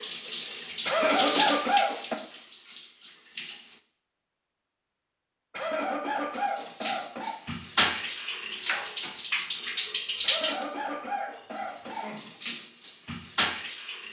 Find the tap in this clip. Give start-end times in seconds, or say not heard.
0.0-3.8, 6.3-14.0.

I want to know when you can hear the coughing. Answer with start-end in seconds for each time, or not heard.
0.8-2.2, 5.5-7.3, 10.2-12.3.